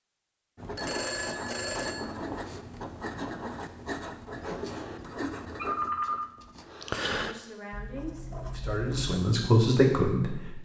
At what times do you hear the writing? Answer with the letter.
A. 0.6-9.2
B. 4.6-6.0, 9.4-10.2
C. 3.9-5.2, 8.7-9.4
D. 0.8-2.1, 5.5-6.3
A.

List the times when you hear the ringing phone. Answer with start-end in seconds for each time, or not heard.
0.8-2.1, 5.5-6.3.